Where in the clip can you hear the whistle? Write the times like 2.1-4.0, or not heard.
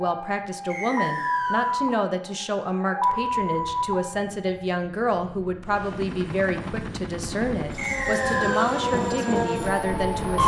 0.7-1.8, 7.8-8.8.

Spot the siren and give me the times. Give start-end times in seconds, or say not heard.
0.0-4.7, 7.8-10.4.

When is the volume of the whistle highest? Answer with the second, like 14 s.
8 s.